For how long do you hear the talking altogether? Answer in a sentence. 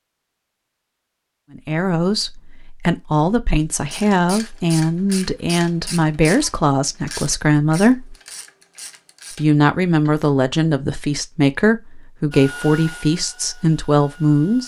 You can hear the talking for 12 seconds altogether.